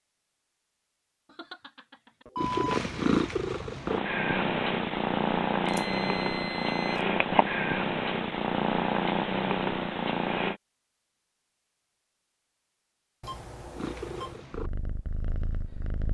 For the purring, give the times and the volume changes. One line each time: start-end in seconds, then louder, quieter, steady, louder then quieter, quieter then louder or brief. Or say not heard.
2.4-10.6 steady
13.8-16.0 brief.